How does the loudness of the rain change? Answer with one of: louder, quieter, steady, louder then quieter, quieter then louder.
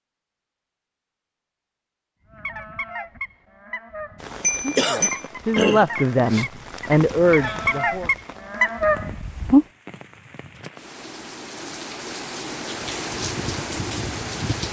quieter then louder.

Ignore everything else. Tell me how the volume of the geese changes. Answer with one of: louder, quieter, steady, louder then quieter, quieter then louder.
louder.